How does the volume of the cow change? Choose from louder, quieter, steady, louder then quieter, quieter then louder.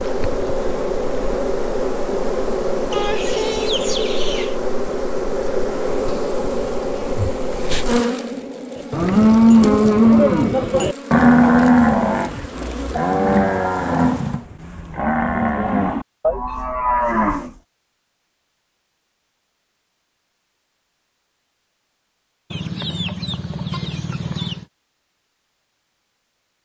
quieter.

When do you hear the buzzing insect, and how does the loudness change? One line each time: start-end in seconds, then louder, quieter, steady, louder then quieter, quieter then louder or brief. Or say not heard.
0.0-14.4 quieter.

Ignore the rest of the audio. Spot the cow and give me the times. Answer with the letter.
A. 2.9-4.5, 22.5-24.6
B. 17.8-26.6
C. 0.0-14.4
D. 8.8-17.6
D.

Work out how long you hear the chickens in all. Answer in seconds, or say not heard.
4 s.